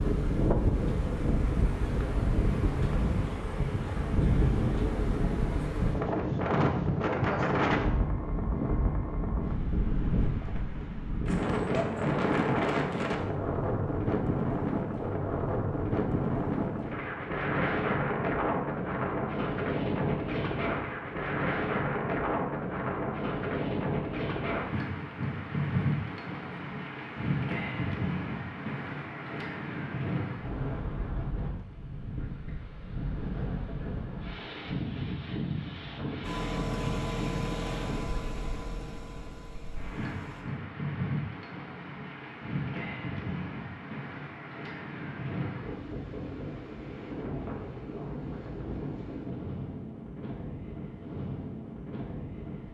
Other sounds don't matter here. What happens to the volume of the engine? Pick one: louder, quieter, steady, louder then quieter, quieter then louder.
quieter.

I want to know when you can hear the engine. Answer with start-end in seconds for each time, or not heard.
36.2-40.5.